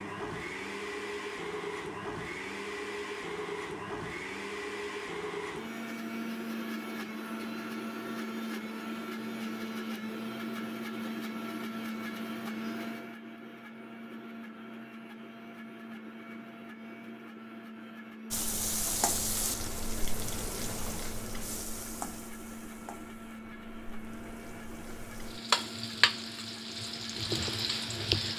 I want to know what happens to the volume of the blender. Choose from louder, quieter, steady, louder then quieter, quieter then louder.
quieter.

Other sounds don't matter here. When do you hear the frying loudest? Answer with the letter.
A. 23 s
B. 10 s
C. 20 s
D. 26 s
D.